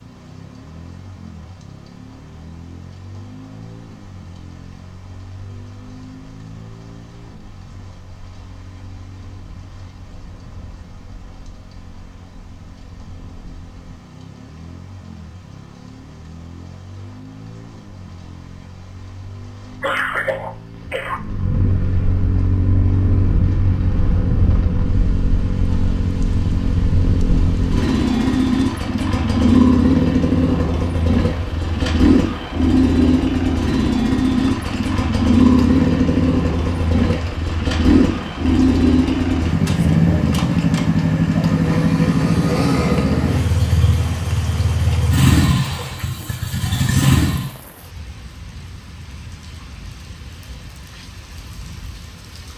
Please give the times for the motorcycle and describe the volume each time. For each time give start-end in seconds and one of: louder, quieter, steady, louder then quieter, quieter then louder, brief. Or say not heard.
0.0-47.5 louder.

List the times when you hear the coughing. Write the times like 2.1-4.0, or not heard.
19.8-21.2.